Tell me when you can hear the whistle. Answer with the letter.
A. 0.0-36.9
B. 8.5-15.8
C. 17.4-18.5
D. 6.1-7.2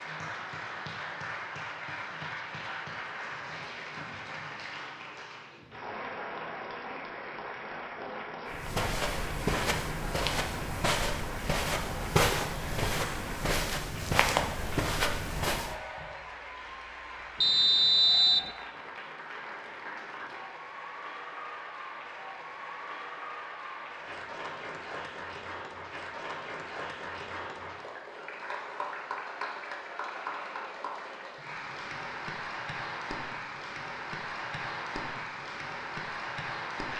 C.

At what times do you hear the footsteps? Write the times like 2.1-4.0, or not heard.
8.5-15.8.